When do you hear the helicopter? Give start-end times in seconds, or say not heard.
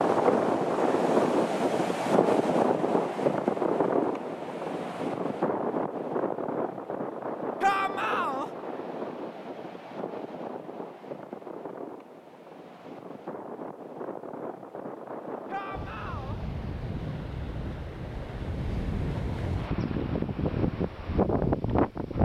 not heard.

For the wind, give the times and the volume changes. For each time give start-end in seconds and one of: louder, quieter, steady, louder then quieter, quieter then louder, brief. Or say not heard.
0.0-22.2 quieter then louder.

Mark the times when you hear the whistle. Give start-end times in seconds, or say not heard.
not heard.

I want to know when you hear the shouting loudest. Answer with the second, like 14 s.
8 s.